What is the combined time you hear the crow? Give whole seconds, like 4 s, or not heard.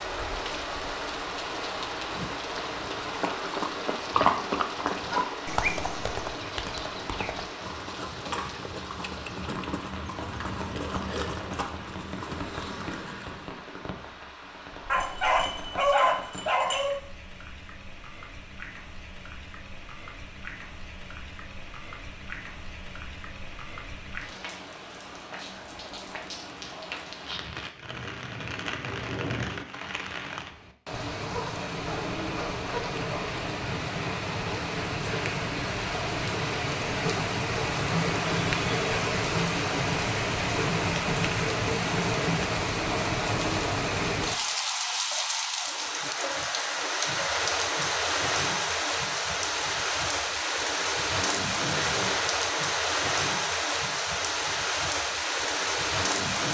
not heard.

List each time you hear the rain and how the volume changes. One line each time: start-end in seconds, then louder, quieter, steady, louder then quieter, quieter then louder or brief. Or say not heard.
0.0-56.4 quieter then louder.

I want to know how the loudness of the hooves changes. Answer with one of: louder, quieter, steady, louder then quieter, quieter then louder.
quieter.